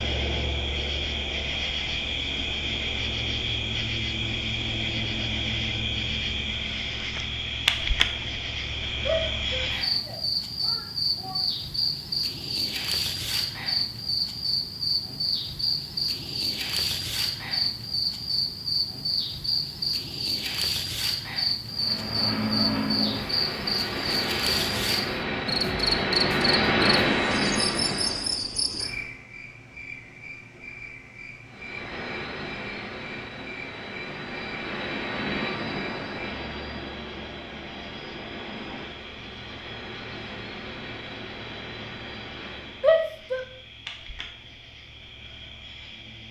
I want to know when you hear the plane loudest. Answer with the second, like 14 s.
27 s.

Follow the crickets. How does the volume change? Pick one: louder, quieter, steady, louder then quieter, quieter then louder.
quieter.